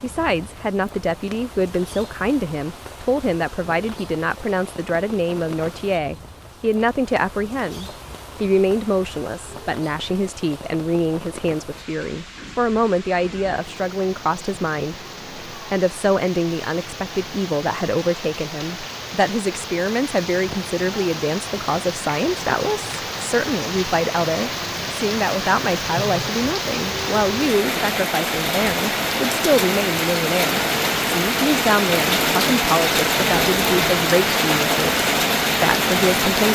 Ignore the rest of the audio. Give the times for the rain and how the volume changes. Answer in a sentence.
The rain can be heard from 0.0 to 36.5 s, getting louder.